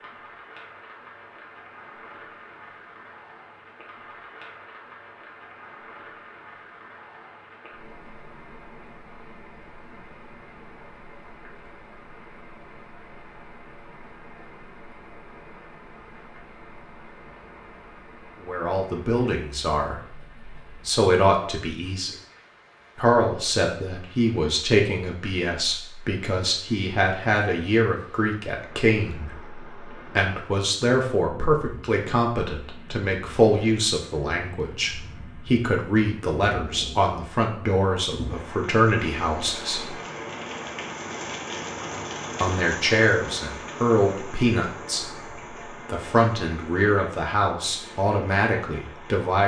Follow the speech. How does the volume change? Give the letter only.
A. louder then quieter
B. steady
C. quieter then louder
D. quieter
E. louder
B.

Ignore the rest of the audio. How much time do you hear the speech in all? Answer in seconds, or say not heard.
28 s.